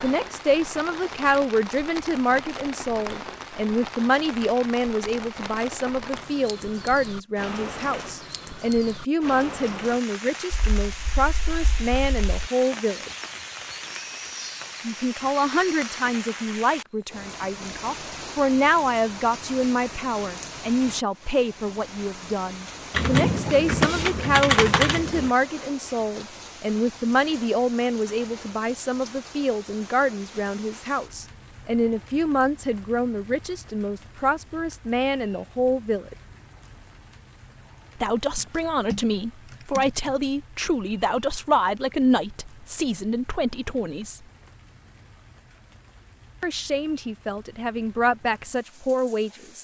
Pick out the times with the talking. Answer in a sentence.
You can hear the talking from 0.0 to 13.1 s, from 14.8 to 36.1 s, from 38.0 to 44.2 s and from 46.4 to 49.5 s.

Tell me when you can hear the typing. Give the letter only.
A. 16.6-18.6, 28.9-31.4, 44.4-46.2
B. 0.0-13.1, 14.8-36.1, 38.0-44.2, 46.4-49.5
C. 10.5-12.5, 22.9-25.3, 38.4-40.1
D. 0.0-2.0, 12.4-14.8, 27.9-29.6
C.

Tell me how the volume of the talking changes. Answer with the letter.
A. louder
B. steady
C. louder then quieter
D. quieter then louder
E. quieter
B.